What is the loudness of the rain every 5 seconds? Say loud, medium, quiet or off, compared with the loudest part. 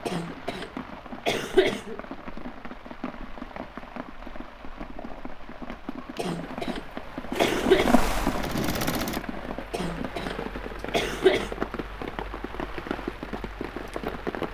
medium, loud, loud.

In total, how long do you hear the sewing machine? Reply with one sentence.
You can hear the sewing machine for 2 seconds altogether.